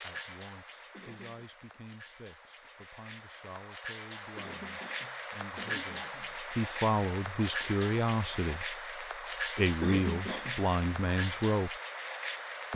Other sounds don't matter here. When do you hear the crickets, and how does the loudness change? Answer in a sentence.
You can hear the crickets from 0.0 to 12.7 s, getting louder.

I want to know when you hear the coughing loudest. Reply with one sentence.
The volume of the coughing peaks at 10 seconds.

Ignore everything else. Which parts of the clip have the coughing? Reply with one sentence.
You can hear the coughing from 0.9 to 1.4 s, from 4.3 to 6.3 s and from 9.8 to 10.6 s.